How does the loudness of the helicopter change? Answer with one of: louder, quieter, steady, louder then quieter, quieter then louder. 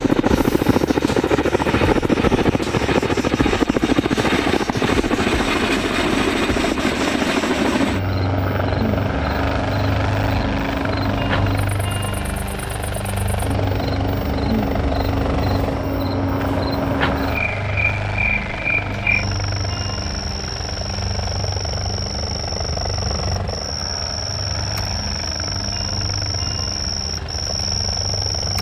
quieter.